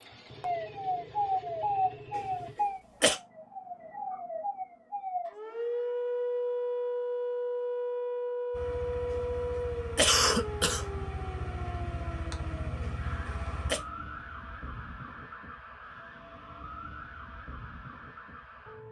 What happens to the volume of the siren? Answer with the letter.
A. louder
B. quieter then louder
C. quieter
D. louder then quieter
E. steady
C.